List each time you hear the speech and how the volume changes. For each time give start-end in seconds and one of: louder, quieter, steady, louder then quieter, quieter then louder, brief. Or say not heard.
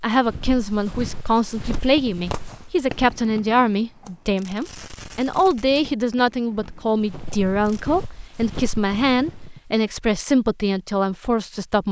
0.0-11.8 steady.